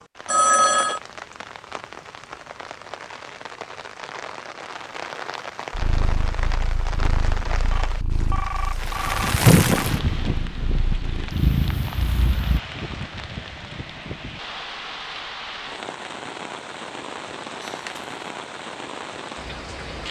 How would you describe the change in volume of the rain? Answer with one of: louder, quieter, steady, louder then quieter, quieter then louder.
louder then quieter.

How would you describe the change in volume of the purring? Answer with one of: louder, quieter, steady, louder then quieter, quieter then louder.
quieter then louder.